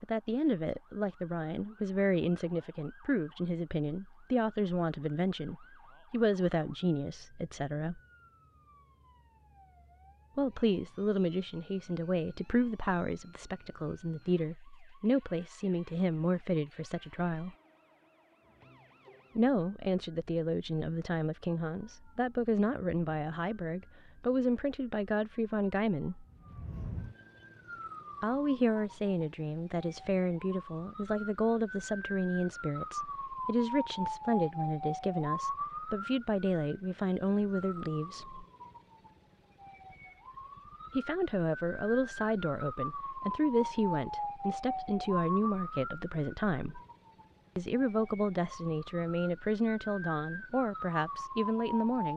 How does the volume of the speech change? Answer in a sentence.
The volume of the speech stays about the same.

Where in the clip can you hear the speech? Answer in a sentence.
You can hear the speech from 0.0 to 8.0 s, from 10.3 to 17.6 s, from 19.4 to 26.2 s, from 28.2 to 38.5 s, from 41.0 to 46.8 s and from 47.5 to 52.1 s.